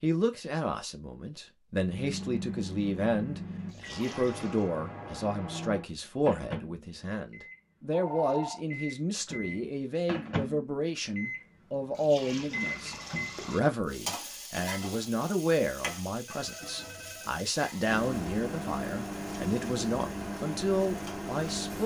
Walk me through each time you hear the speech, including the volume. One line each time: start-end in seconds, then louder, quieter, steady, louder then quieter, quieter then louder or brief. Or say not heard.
0.0-21.8 steady.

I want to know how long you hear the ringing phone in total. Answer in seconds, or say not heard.
2 s.